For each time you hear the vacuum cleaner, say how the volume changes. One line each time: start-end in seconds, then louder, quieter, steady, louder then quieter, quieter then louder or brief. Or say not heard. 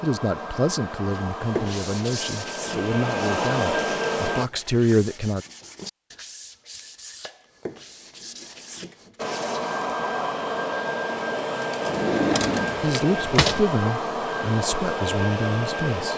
0.0-4.5 louder
9.2-16.1 steady.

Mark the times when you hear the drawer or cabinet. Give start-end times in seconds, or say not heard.
11.8-13.7.